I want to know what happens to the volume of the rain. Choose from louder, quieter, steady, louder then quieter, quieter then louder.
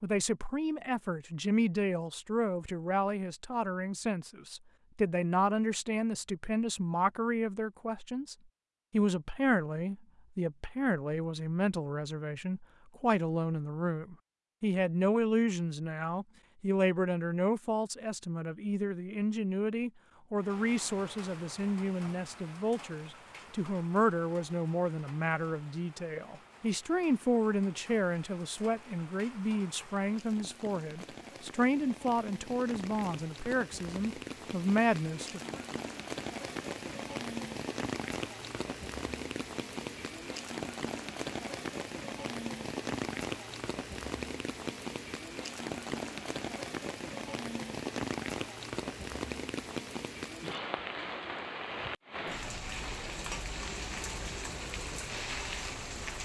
louder.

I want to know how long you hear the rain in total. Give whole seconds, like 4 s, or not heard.
36 s.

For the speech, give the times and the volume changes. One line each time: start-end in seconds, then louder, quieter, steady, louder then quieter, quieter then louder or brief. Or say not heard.
0.0-35.6 steady.